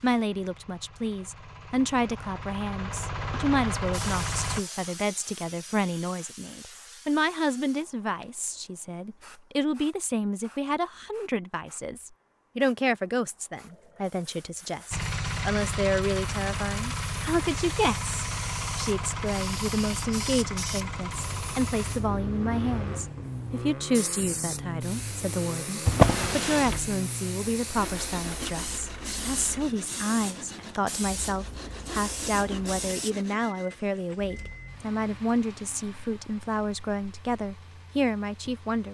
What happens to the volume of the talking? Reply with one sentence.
The volume of the talking stays about the same.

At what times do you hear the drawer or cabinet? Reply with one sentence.
The drawer or cabinet can be heard from 25.9 to 26.9 s.